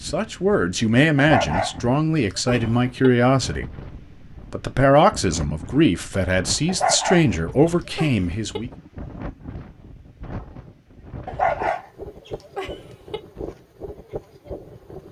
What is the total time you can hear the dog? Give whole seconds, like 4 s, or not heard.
6 s.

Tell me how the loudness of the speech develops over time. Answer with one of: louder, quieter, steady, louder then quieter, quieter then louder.
steady.